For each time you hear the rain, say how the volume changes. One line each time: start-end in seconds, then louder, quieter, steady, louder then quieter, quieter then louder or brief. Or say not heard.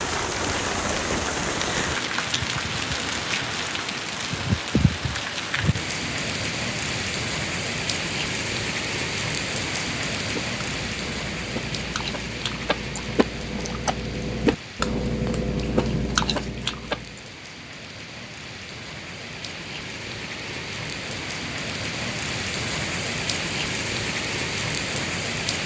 0.0-25.6 quieter then louder.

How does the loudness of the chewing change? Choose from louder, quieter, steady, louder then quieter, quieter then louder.
louder.